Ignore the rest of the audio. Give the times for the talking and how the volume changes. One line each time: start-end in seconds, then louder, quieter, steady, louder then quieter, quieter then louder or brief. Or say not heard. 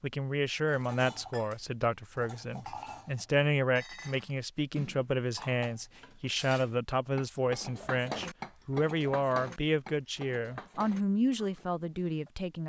0.0-12.6 steady.